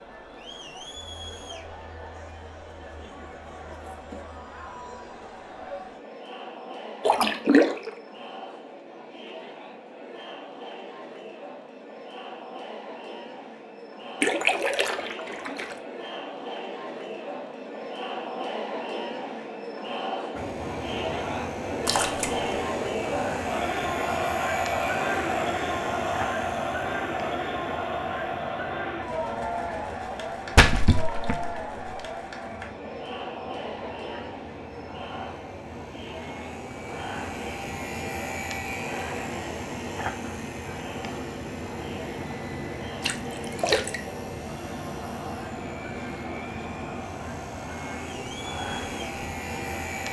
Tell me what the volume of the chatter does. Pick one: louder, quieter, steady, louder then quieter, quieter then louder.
louder then quieter.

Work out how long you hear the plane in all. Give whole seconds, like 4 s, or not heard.
30 s.